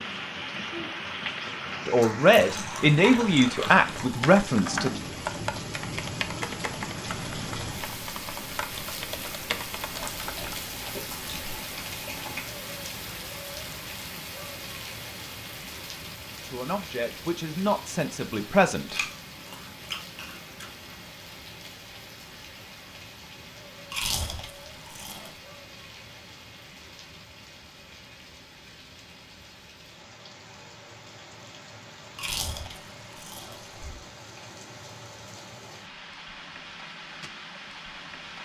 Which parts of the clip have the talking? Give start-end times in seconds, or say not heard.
1.9-4.9, 16.4-19.0.